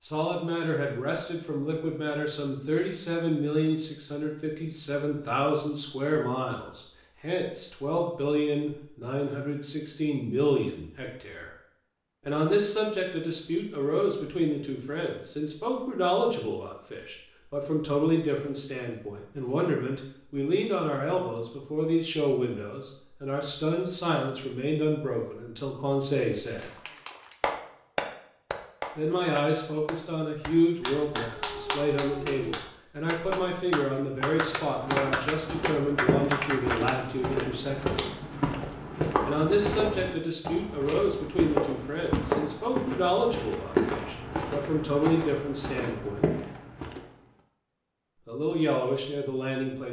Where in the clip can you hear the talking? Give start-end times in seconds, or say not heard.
0.0-11.5, 12.2-26.7, 28.9-38.0, 39.2-46.2, 48.2-49.8.